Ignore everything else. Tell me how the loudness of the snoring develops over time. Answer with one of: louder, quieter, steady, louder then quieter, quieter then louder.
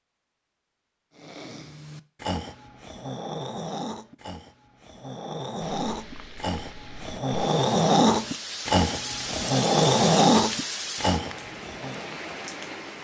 louder.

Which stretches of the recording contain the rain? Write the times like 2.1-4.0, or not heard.
5.6-12.9.